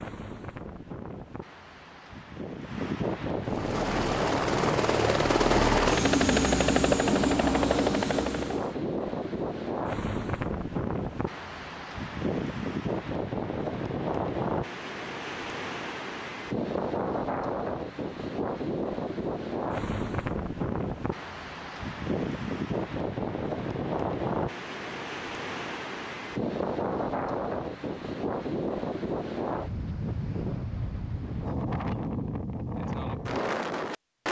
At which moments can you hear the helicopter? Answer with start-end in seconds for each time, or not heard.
3.4-8.8.